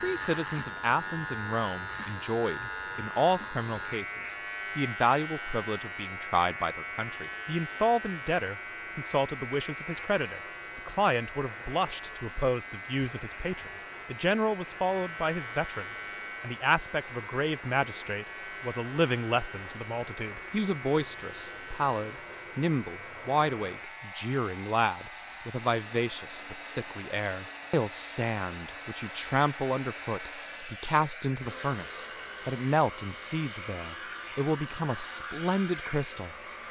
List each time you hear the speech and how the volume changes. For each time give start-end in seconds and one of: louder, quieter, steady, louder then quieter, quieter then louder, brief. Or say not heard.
0.0-36.6 steady.